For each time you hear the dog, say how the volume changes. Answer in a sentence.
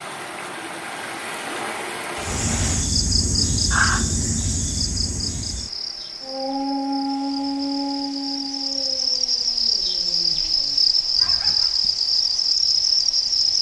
The dog can be heard from 6.2 to 11.8 s, getting quieter.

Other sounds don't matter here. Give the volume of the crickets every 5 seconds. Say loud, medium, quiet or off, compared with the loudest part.
loud, medium, loud.